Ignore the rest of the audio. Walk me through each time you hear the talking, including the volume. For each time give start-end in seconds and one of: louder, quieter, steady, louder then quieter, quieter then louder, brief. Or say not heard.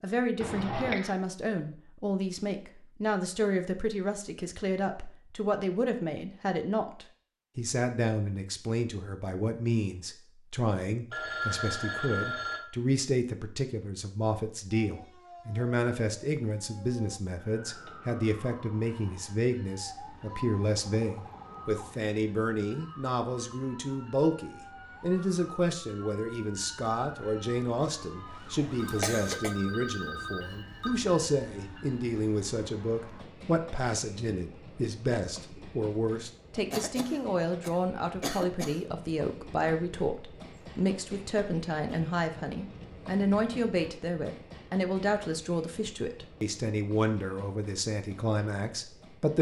0.0-49.3 steady.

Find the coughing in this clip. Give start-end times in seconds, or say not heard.
0.4-1.1, 28.9-29.6, 36.7-38.8.